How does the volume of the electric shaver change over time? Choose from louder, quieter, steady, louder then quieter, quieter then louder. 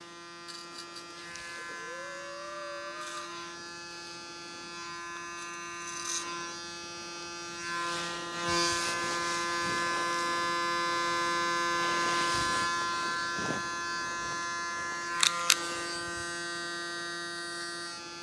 louder.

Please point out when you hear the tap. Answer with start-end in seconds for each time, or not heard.
not heard.